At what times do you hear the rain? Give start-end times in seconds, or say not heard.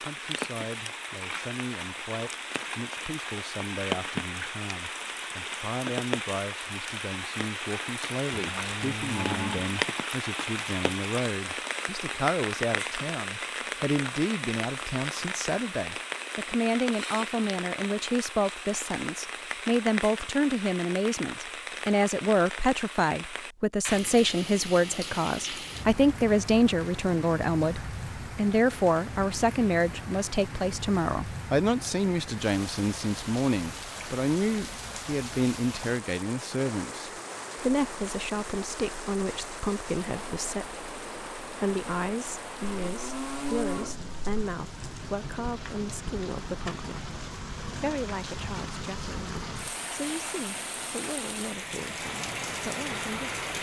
0.0-53.5.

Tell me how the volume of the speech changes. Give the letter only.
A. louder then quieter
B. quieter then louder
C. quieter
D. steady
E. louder
A.